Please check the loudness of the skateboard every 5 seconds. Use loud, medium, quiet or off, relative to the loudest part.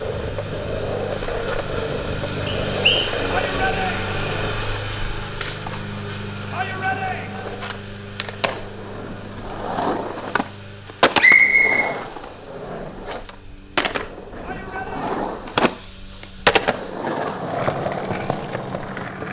medium, medium, loud, loud.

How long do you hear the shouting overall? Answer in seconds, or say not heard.
3 s.